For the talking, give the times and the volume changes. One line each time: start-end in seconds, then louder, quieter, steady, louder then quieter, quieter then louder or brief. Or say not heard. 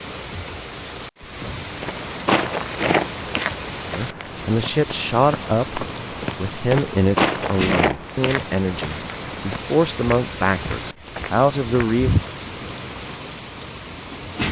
4.0-12.1 steady.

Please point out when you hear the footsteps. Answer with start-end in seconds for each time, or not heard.
1.8-12.2.